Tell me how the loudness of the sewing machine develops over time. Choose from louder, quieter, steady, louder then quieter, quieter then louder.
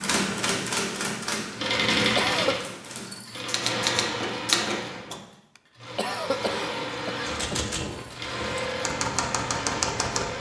quieter then louder.